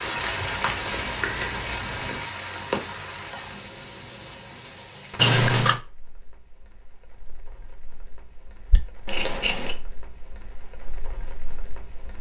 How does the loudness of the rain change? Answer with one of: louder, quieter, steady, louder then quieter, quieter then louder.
quieter then louder.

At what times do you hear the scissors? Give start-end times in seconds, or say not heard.
0.3-2.3, 5.2-5.8, 9.1-9.8.